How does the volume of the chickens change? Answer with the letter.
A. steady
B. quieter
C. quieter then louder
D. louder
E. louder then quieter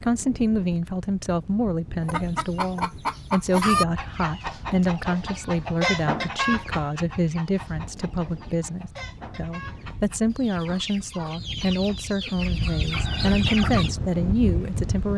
C.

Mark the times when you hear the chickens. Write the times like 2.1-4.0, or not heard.
2.0-13.9.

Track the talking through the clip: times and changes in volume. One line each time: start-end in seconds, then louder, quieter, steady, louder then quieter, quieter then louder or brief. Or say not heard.
0.0-15.1 steady.